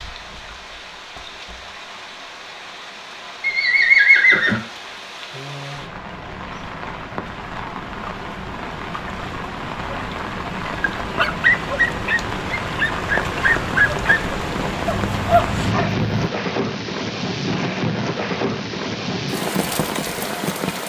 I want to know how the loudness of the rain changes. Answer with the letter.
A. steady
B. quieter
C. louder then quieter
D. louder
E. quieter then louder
D.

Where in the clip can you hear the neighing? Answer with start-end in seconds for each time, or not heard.
3.4-4.6.